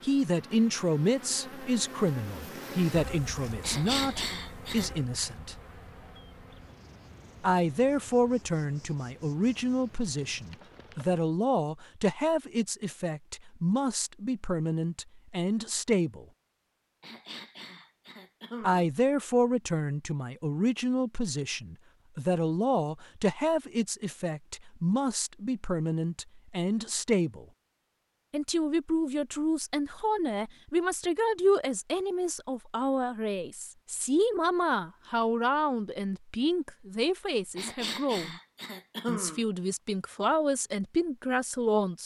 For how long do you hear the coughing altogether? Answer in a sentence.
You can hear the coughing for 5 seconds altogether.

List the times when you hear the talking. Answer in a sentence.
The talking can be heard from 0.0 to 5.5 s, from 7.4 to 16.2 s, from 18.6 to 27.4 s, from 28.3 to 38.4 s and from 39.0 to 42.0 s.